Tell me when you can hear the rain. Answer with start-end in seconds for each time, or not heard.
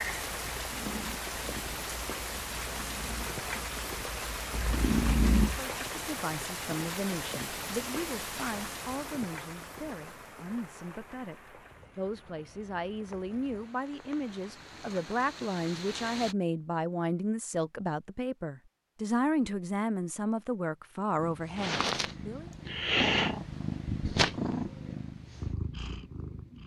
0.0-16.4.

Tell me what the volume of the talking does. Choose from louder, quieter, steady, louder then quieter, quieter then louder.
louder.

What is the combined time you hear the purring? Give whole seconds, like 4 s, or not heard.
11 s.